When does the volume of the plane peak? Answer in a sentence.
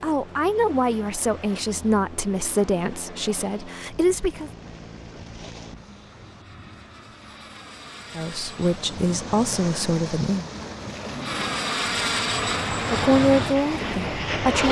The volume of the plane peaks at 12 seconds.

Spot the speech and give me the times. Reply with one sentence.
You can hear the speech from 0.0 to 4.5 s, from 8.2 to 10.4 s and from 12.9 to 14.6 s.